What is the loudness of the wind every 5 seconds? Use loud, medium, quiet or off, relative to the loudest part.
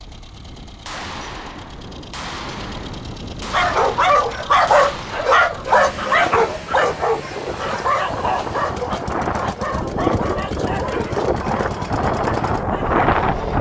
quiet, medium, loud.